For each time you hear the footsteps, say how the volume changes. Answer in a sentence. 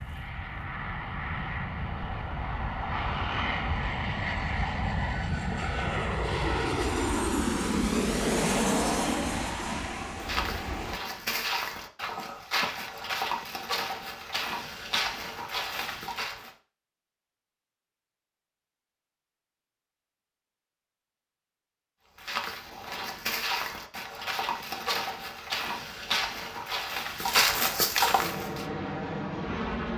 You can hear the footsteps from 10.2 to 16.5 s, at a steady volume; and from 22.1 to 28.6 s, getting louder.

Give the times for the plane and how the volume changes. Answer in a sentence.
You can hear the plane from 0.0 to 11.0 s, getting louder; and briefly from 28.1 to 29.9 s.